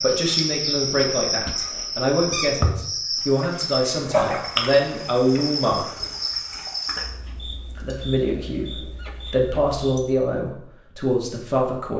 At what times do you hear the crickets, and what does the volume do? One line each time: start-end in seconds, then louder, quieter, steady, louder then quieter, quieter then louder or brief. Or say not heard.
0.0-10.3 quieter.